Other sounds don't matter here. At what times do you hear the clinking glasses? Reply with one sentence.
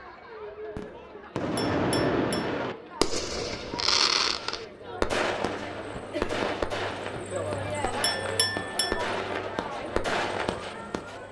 You can hear the clinking glasses from 1.6 to 2.5 s and from 8.0 to 9.1 s.